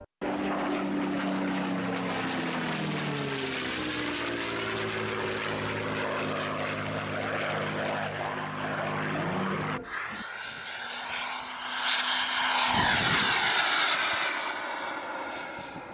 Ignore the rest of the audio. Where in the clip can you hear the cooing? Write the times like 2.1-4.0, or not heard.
9.1-10.2.